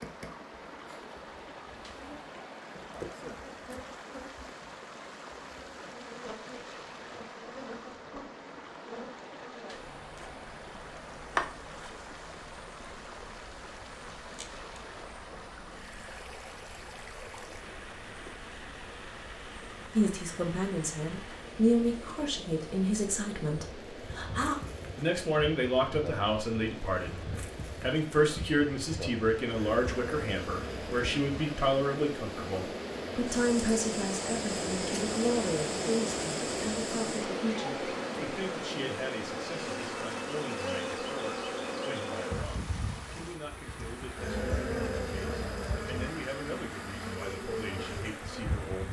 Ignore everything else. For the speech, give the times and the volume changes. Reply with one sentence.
The speech can be heard from 19.9 to 48.8 s, getting quieter.